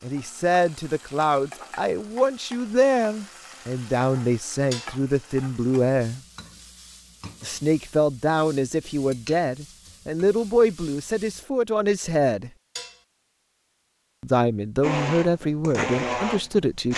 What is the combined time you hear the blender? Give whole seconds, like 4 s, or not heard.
2 s.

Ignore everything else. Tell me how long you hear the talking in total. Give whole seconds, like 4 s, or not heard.
14 s.